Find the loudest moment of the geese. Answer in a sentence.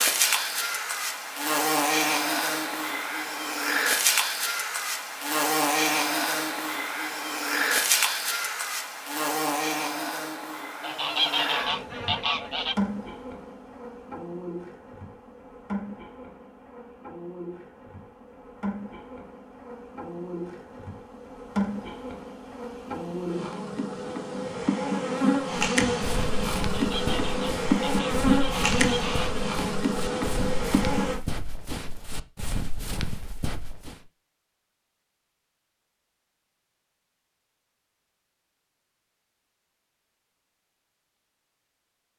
The loudest moment of the geese is at 11 seconds.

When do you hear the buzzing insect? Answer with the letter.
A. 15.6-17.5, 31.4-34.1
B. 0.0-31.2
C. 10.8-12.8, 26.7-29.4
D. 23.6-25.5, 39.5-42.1
B.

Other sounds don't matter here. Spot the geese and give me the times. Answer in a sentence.
You can hear the geese from 10.8 to 12.8 s and from 26.7 to 29.4 s.